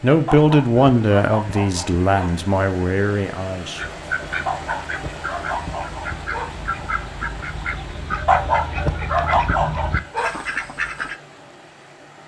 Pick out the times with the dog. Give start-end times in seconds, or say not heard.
0.2-2.4, 4.5-6.5, 8.2-10.3.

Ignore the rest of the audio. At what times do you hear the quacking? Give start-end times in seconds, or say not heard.
3.8-11.2.